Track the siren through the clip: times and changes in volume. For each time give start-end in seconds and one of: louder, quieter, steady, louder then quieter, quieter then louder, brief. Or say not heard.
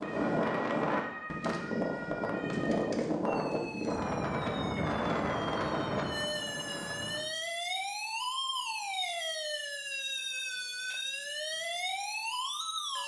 0.0-13.0 louder.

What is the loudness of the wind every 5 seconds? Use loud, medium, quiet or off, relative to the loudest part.
loud, loud, off.